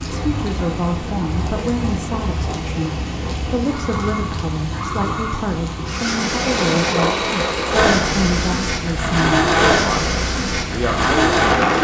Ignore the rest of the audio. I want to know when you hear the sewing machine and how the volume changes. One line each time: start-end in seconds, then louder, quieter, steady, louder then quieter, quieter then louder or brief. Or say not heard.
6.3-11.7 steady.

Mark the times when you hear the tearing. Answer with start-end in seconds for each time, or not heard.
not heard.